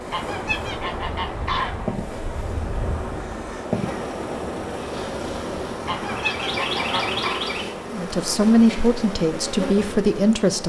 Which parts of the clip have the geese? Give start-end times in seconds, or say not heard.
0.1-1.9, 5.8-7.5.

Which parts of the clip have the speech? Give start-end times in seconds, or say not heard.
7.9-10.6.